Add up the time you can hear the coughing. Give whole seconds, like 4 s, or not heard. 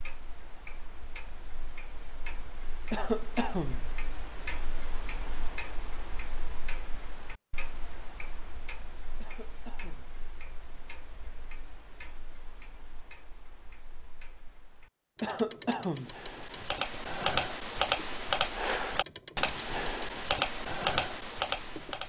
3 s.